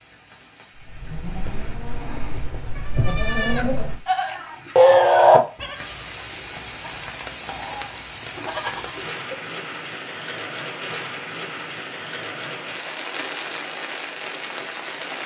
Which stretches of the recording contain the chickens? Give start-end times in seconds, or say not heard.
not heard.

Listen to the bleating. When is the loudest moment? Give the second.
5 s.